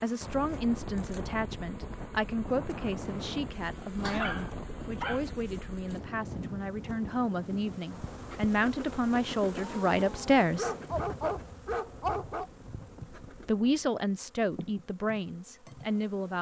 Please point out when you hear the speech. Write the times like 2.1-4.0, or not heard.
0.0-10.7, 13.4-16.3.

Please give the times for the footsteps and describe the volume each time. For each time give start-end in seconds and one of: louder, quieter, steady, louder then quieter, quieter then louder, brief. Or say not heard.
not heard.